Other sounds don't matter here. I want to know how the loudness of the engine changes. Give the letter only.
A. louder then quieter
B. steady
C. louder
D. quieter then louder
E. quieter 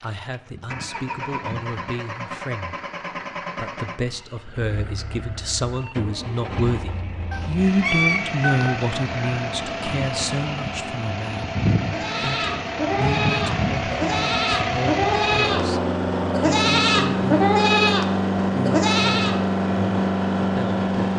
C.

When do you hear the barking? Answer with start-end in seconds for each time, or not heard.
not heard.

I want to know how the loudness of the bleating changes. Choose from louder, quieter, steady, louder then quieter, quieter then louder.
louder.